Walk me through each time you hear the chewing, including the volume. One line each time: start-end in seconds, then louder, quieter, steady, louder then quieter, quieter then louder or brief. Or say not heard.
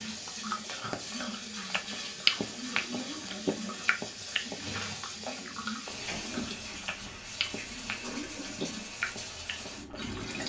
0.0-10.4 quieter.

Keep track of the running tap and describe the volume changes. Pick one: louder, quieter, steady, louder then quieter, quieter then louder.
steady.